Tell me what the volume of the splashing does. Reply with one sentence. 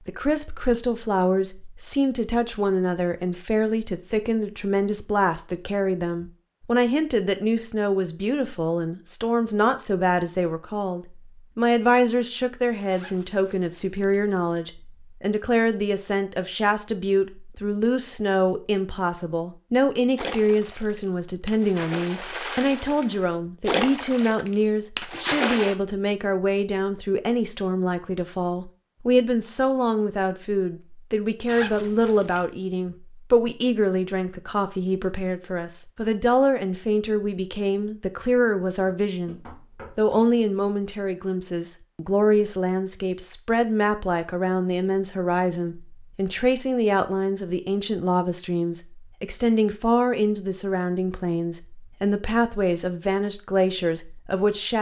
The volume of the splashing goes up.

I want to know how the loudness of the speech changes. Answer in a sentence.
The loudness of the speech stays about the same.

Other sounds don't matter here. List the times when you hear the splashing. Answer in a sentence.
The splashing can be heard from 20.1 to 25.8 s.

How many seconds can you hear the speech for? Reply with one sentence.
You can hear the speech for 55 seconds altogether.